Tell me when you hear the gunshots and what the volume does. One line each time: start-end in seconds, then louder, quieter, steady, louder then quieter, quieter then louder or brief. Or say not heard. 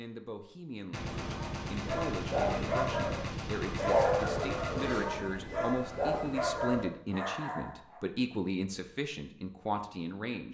0.9-5.5 steady.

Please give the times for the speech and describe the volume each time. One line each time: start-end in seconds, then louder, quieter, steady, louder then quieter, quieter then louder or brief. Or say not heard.
0.0-10.4 louder.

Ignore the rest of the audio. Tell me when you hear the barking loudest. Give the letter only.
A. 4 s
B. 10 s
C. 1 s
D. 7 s
A.